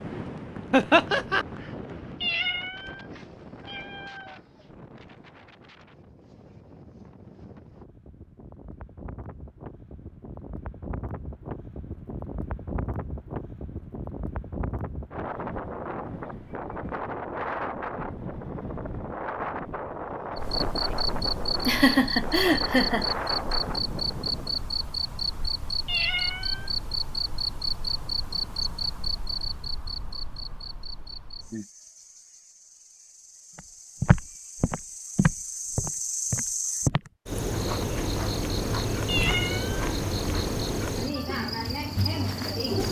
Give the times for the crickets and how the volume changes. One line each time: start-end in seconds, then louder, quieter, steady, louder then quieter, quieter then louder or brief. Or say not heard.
20.4-42.8 quieter then louder.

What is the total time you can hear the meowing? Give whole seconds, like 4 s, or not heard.
4 s.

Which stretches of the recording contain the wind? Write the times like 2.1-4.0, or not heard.
0.0-24.7.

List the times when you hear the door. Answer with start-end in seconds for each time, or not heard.
not heard.